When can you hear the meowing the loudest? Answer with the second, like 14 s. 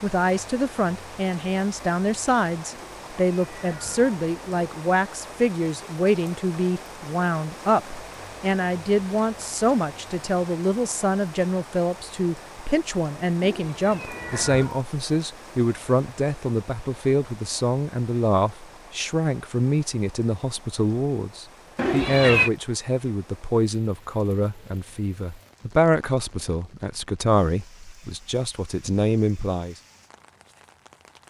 22 s.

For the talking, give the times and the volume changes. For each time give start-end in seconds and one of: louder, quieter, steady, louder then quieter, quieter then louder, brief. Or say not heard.
0.0-29.8 steady.